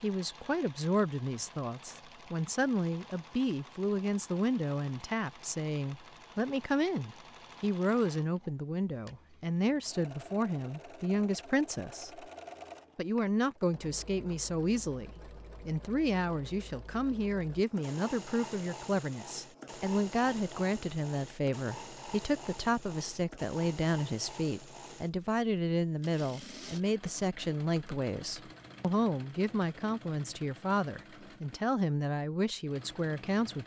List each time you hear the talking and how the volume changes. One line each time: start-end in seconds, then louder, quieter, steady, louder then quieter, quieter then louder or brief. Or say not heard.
0.0-12.2 steady
12.9-33.6 steady.